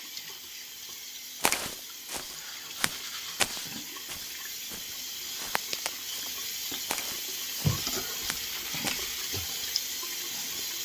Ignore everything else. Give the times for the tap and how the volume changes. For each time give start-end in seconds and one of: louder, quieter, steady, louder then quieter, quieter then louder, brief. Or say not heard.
0.0-10.8 louder.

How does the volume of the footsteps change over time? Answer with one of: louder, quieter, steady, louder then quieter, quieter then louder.
louder then quieter.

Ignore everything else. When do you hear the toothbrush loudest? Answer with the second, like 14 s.
8 s.